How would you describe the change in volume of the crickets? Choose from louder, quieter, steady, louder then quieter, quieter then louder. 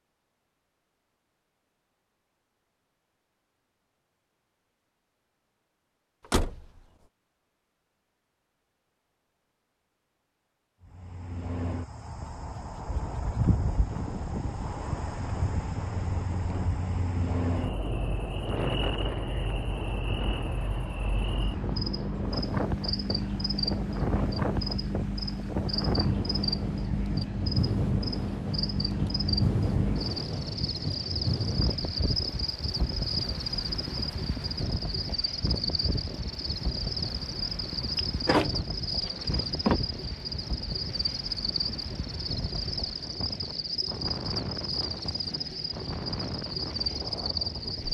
steady.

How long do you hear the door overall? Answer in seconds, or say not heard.
2 s.